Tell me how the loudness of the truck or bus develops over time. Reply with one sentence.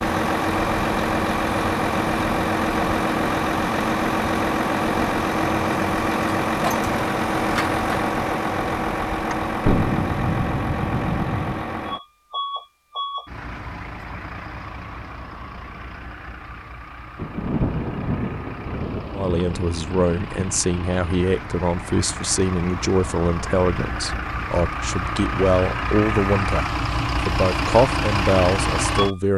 The loudness of the truck or bus goes down, then up.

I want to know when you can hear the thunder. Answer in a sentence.
You can hear the thunder from 9.7 to 11.7 s and from 17.1 to 20.6 s.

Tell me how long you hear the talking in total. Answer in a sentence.
You can hear the talking for 10 seconds altogether.